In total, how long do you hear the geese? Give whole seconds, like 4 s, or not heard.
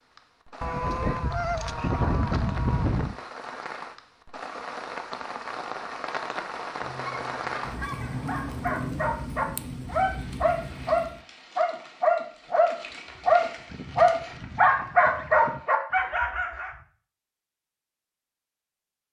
7 s.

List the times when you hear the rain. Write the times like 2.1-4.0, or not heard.
0.0-11.2.